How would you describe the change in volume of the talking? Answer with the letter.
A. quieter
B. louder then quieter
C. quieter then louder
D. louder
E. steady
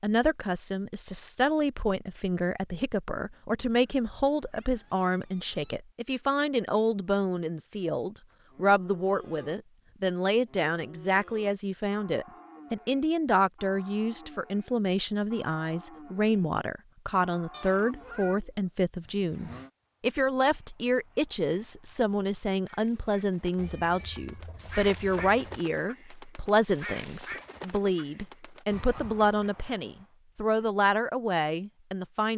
E.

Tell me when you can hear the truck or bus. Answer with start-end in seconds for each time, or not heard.
not heard.